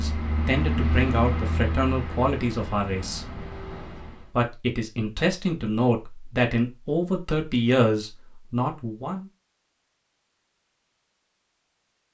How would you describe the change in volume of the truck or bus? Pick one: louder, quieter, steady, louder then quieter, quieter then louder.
quieter.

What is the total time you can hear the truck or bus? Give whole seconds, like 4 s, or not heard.
4 s.